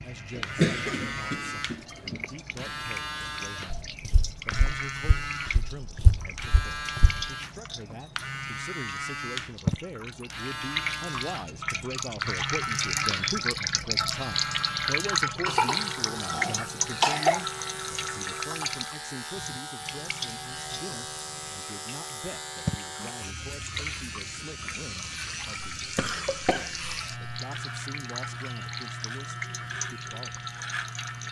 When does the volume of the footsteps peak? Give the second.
6 s.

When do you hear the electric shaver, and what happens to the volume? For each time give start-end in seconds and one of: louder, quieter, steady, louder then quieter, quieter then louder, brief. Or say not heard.
0.1-31.2 steady.